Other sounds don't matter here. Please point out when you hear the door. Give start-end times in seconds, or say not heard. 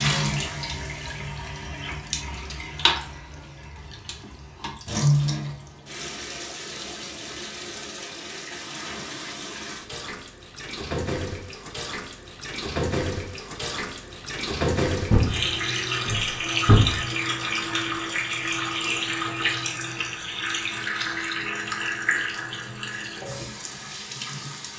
15.1-17.1.